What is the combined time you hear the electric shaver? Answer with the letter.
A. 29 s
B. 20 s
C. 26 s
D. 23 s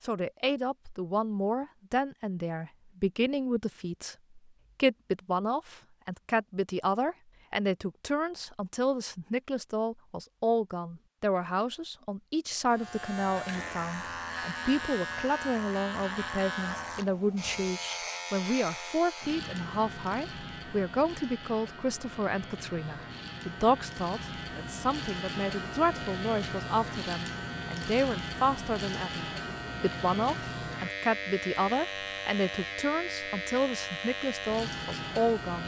D.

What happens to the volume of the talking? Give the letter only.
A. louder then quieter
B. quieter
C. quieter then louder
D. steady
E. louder
D.